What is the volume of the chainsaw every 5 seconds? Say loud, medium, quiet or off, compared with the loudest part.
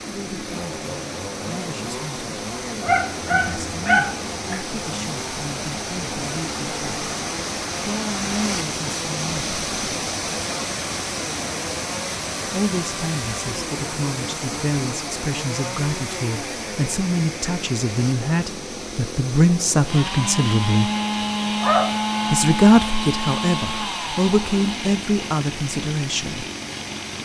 medium, medium, medium, medium, loud, medium.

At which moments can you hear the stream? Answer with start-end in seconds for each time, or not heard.
0.0-27.1.